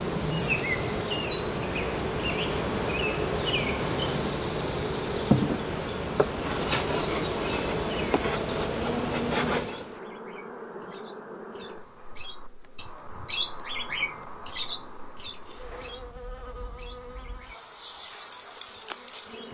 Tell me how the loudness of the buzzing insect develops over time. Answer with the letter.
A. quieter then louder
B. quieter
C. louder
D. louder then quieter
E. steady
A.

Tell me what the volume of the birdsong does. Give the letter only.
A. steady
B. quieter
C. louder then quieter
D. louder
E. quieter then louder
C.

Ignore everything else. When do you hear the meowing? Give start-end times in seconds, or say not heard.
not heard.